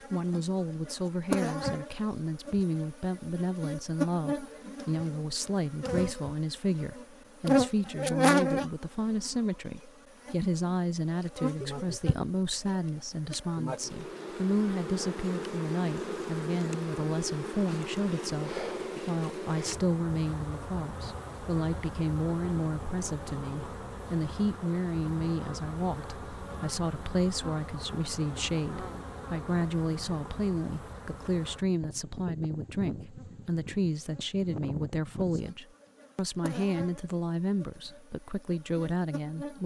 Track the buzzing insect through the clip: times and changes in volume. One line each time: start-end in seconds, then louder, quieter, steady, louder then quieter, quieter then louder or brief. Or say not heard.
0.0-39.6 quieter.